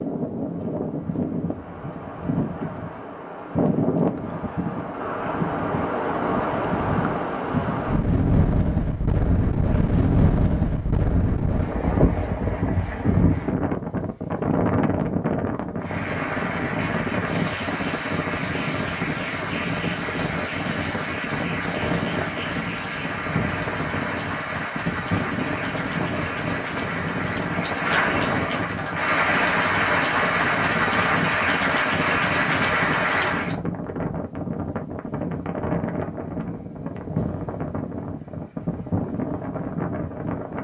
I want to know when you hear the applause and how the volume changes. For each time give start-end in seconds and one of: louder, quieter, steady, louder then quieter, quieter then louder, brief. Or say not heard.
15.8-33.5 louder.